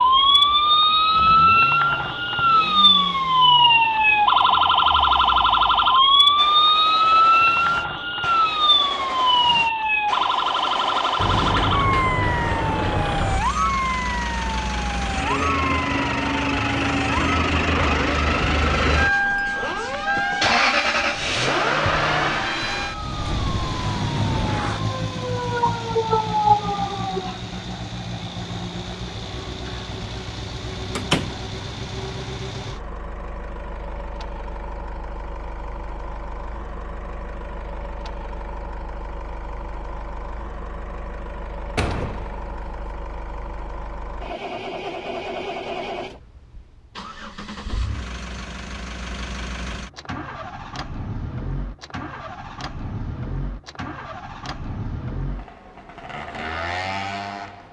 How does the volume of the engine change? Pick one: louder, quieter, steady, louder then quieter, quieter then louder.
louder then quieter.